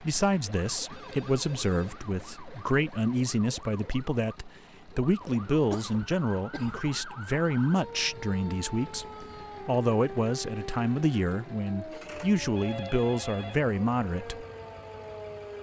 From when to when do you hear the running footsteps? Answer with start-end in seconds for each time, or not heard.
not heard.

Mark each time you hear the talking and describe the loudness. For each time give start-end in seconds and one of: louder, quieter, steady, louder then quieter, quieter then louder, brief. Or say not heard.
0.0-14.4 steady.